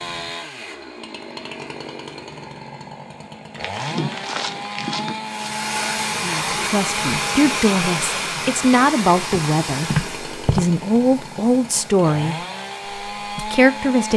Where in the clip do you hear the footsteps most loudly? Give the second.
10 s.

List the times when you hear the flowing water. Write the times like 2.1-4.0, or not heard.
5.2-14.1.